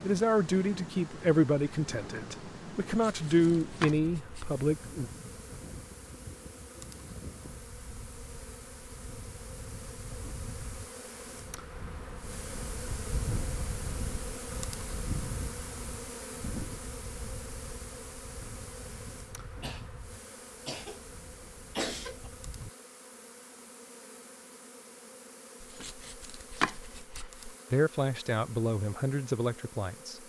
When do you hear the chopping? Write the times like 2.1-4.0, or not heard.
2.9-4.6, 25.6-27.6.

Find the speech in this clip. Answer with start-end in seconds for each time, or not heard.
0.0-5.1, 27.7-30.2.